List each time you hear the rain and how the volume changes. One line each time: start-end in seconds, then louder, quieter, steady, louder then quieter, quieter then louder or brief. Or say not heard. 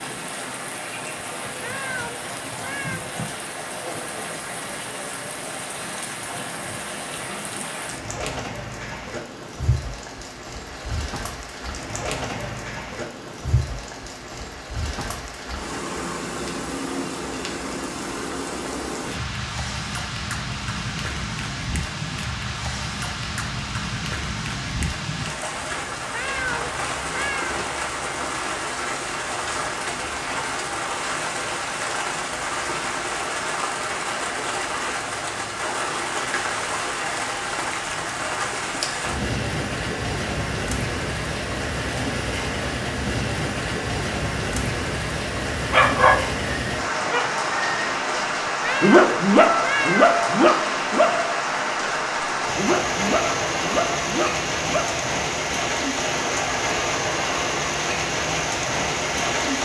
0.0-59.6 louder.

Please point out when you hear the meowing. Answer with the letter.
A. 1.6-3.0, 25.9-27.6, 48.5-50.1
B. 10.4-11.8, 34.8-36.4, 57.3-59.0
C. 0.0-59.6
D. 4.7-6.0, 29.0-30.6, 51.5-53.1
A.